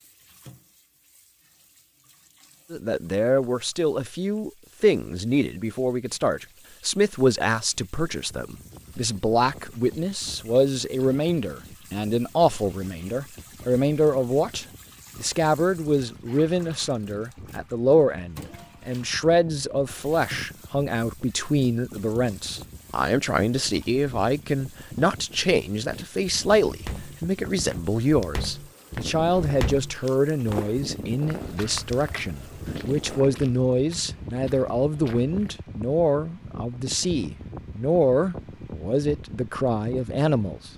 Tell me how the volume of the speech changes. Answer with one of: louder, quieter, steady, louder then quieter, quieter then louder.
steady.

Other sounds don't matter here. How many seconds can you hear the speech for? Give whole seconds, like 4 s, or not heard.
38 s.